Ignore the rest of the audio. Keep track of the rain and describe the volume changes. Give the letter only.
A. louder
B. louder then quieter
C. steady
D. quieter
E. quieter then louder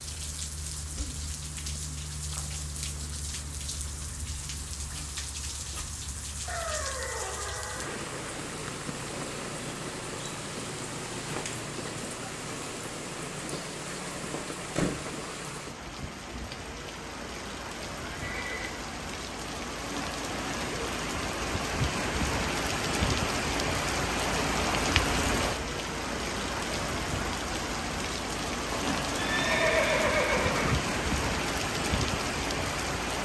A.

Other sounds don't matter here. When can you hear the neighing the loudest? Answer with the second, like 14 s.
30 s.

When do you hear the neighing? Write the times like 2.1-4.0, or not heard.
6.5-8.1, 18.1-18.7, 28.7-30.8.